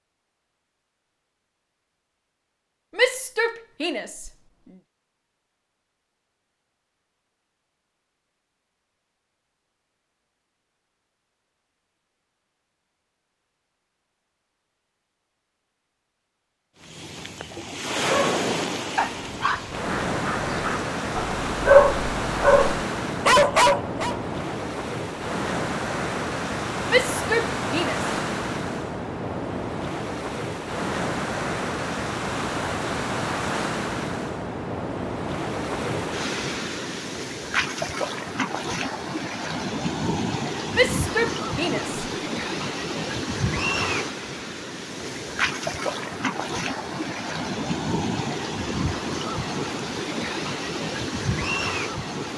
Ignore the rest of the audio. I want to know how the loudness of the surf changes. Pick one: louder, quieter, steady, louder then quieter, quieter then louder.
steady.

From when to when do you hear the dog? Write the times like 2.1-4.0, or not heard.
18.1-24.1.